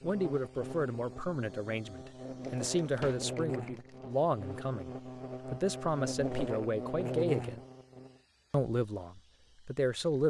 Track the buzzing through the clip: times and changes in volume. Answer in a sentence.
The buzzing can be heard from 0.0 to 8.2 s, getting louder.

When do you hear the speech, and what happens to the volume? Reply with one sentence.
The speech can be heard from 0.0 to 7.6 s, at a steady volume; and briefly from 8.5 to 10.2 s.